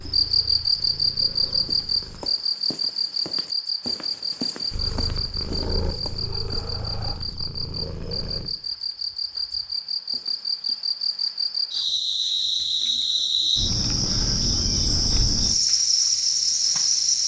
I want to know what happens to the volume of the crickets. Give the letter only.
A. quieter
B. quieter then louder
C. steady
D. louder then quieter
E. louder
B.